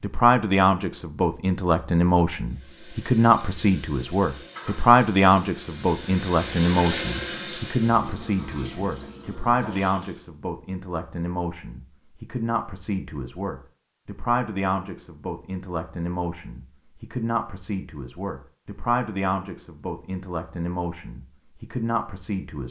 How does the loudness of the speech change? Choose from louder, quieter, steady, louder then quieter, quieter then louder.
quieter.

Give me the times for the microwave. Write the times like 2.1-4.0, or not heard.
not heard.